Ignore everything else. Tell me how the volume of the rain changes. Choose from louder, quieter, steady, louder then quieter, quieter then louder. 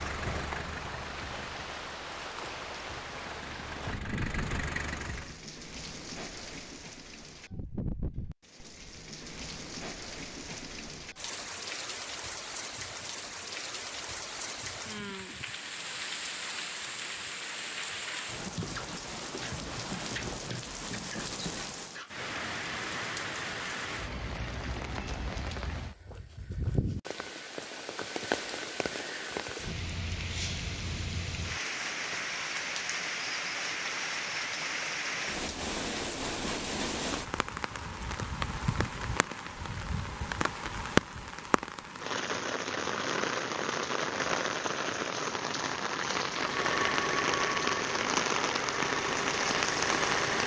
louder.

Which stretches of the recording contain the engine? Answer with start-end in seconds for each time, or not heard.
0.0-5.4, 46.2-50.4.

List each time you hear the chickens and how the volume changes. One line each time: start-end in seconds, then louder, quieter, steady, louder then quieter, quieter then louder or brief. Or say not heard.
not heard.